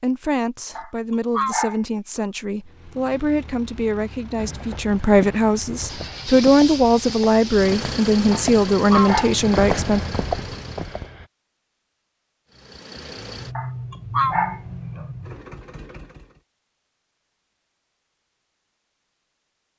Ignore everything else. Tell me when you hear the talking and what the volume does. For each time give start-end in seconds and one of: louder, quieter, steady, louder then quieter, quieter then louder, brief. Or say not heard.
0.0-10.0 louder.